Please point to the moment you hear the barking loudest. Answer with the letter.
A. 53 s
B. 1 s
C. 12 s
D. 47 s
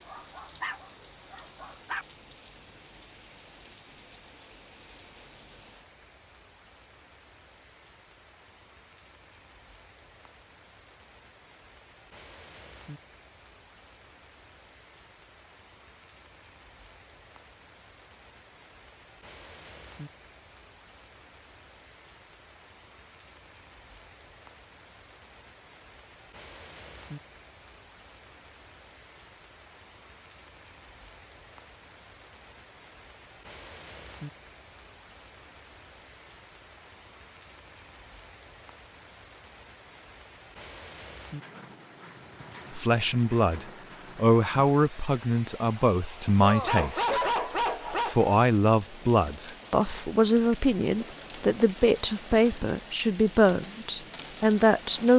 D.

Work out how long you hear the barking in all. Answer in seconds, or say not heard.
4 s.